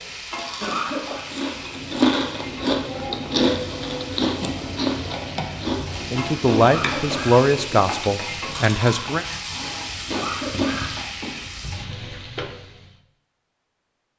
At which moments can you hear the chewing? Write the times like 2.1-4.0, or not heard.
0.2-11.1.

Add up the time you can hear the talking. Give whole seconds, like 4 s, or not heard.
3 s.